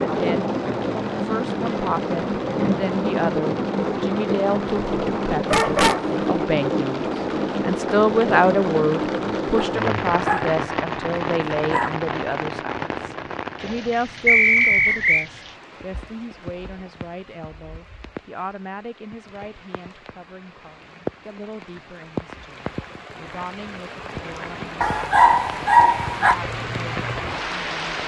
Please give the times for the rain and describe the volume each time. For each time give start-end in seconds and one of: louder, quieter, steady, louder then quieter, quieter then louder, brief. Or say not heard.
0.0-28.0 quieter then louder.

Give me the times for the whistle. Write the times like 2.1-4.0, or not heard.
14.2-15.2.